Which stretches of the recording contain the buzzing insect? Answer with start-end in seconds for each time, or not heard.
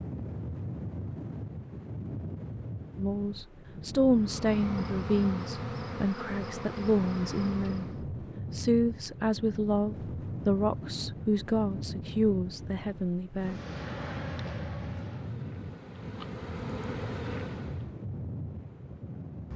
4.2-8.1, 13.3-17.9.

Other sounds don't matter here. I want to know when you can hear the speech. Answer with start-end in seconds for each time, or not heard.
3.0-7.8, 8.5-13.6.